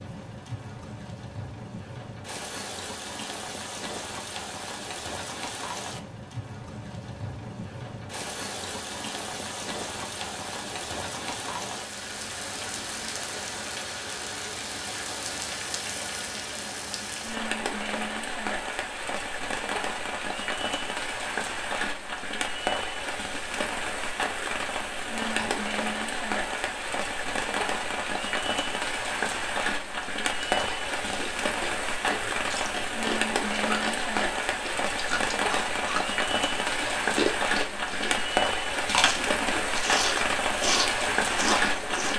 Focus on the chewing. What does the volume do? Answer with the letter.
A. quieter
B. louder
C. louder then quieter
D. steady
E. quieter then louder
B.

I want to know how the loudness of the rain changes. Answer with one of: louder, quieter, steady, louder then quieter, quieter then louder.
louder.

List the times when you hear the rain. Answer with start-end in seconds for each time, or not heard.
0.0-42.1.